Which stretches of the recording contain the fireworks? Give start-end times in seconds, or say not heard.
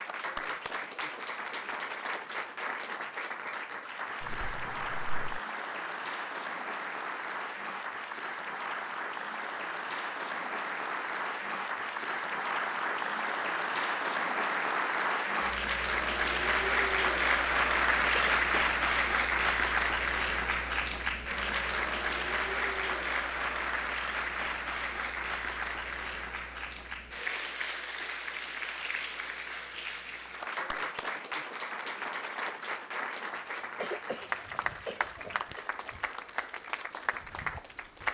not heard.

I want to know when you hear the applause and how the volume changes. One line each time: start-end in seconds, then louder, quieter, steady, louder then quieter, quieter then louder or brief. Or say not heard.
0.0-38.0 louder then quieter.